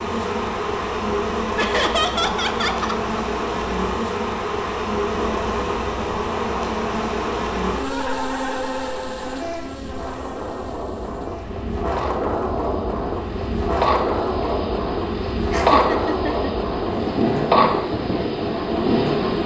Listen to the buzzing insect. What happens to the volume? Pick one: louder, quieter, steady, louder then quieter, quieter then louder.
quieter then louder.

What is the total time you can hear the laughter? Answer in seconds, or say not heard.
4 s.